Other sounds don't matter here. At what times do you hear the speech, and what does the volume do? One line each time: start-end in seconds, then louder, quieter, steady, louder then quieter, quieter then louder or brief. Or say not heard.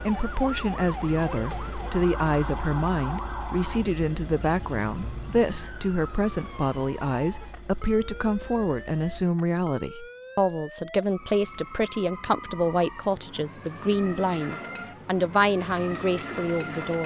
0.0-17.0 steady.